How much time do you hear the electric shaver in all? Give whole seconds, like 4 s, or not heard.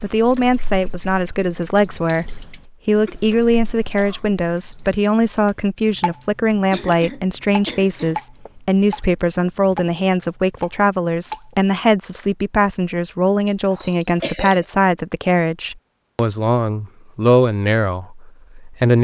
not heard.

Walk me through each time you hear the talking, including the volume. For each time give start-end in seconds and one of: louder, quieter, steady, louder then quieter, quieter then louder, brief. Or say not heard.
0.0-18.9 steady.